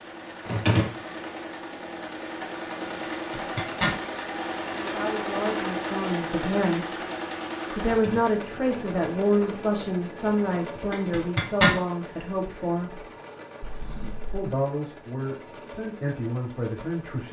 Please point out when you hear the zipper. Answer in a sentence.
You can hear the zipper from 3.1 to 4.0 s and from 10.9 to 11.8 s.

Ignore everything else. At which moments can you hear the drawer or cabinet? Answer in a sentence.
You can hear the drawer or cabinet from 0.5 to 0.9 s, from 7.8 to 8.3 s and from 13.6 to 14.4 s.